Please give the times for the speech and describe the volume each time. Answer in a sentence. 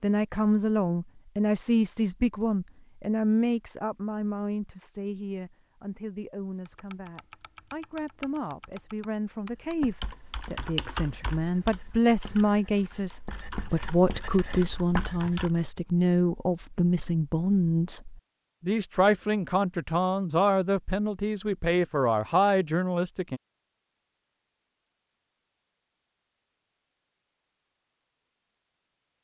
The speech can be heard from 0.0 to 23.4 s, getting quieter then louder.